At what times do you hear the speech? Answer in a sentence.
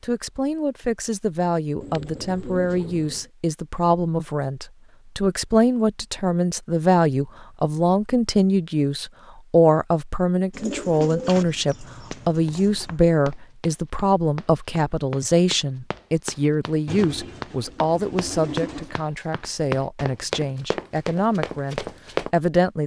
You can hear the speech from 0.0 to 22.8 s.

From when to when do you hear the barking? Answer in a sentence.
The barking can't be heard in this clip.